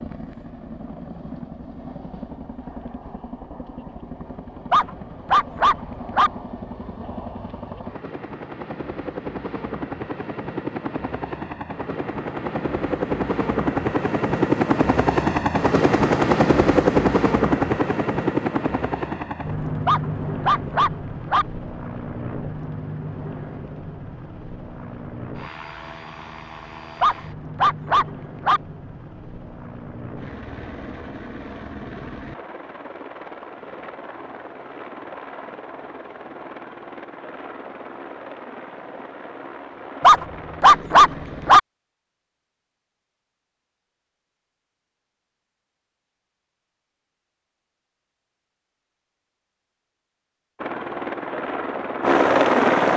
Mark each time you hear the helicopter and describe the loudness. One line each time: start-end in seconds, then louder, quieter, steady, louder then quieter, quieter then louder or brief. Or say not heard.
0.0-41.6 louder then quieter
50.5-52.9 brief.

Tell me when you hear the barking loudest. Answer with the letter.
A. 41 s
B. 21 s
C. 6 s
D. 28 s
A.